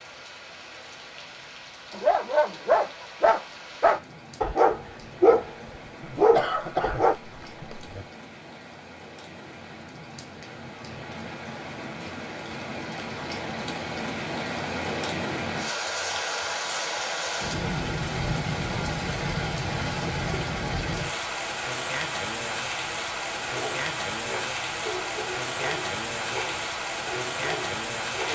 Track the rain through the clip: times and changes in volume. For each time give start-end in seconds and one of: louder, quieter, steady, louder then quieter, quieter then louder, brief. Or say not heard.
0.0-28.3 louder.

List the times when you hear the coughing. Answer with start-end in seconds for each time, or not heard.
6.0-8.1.